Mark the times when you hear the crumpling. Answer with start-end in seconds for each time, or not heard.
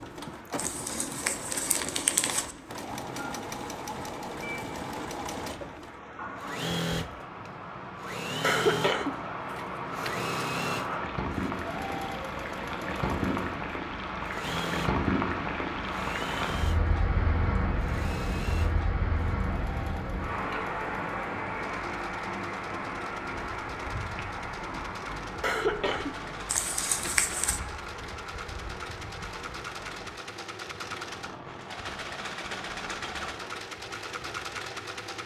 0.6-2.5, 26.4-27.6.